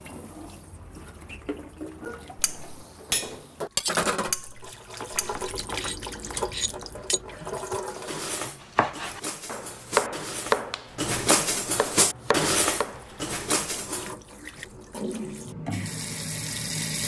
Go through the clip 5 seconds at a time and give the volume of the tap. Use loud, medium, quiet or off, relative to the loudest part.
loud, loud, medium, loud.